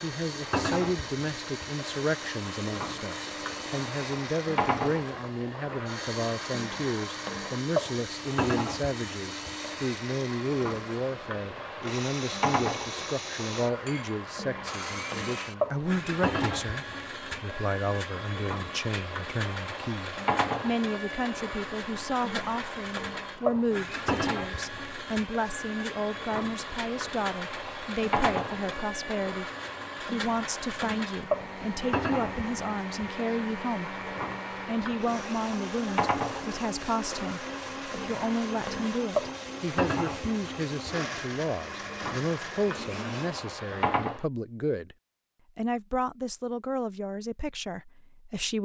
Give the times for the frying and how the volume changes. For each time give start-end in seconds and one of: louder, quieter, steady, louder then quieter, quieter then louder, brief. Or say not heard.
0.0-44.2 steady.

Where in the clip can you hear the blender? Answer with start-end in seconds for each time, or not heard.
0.0-43.4.